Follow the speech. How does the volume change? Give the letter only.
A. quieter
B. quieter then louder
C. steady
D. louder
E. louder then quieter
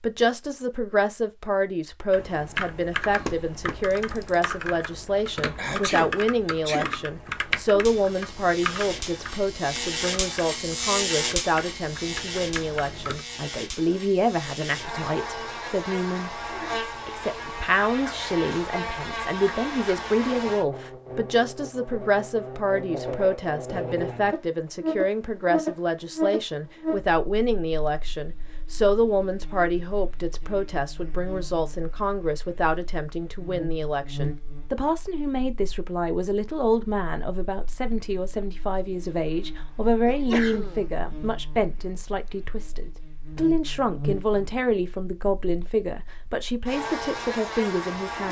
C.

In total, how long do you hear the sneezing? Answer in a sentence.
The sneezing can be heard for 2 seconds in total.